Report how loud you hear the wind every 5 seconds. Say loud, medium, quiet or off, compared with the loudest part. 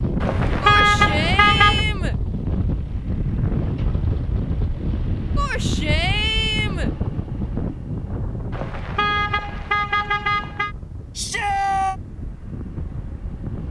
loud, loud, medium.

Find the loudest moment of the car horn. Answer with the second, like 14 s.
1 s.